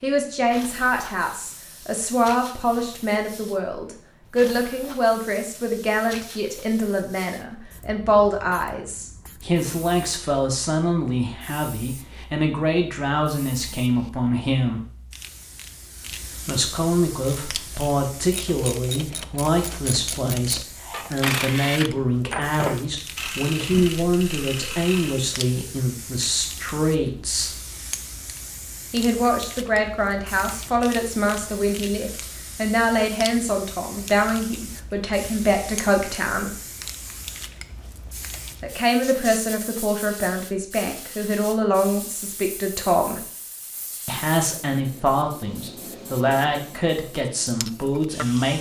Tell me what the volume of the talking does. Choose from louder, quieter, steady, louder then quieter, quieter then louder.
steady.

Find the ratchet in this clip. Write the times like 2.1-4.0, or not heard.
17.2-25.4.